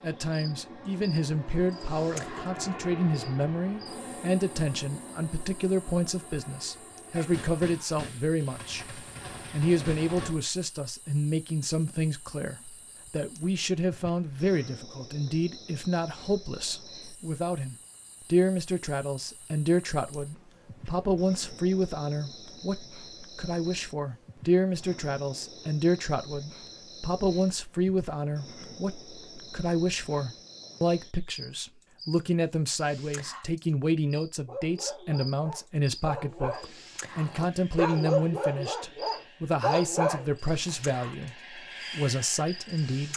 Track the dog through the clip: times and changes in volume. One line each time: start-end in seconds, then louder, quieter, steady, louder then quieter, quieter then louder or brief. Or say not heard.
34.5-40.8 louder.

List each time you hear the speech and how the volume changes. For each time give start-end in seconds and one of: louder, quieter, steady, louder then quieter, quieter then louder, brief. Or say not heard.
0.0-43.1 steady.